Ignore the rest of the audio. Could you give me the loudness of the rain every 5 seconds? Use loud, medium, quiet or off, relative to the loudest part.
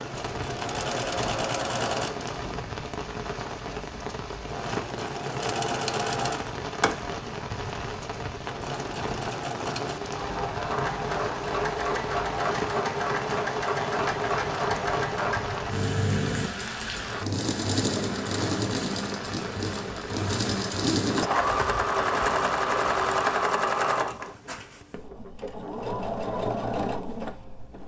loud, loud, loud, loud, loud, off.